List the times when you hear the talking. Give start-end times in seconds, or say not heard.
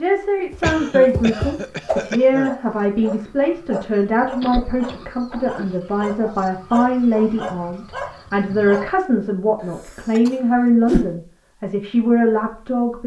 0.0-13.0.